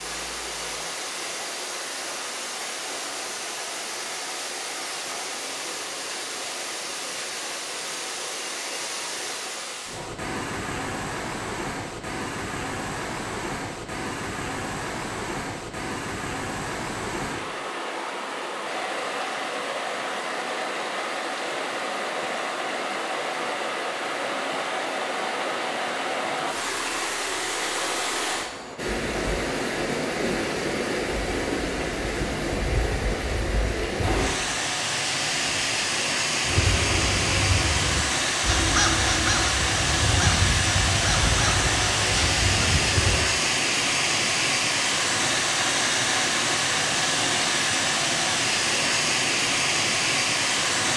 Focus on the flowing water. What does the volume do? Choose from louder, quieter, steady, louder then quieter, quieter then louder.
louder.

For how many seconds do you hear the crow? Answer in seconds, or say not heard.
7 s.